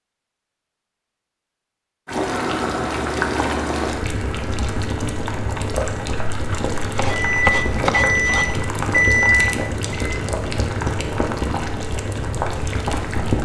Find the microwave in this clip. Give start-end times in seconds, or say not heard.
7.2-10.2.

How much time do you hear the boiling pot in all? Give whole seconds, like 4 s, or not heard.
11 s.